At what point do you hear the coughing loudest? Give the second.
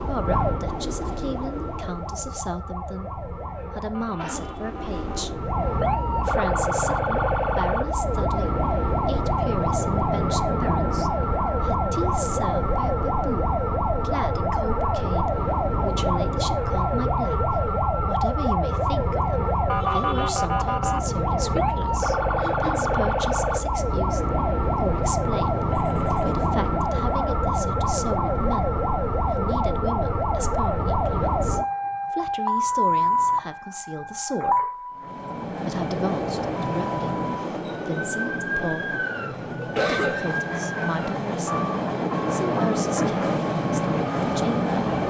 40 s.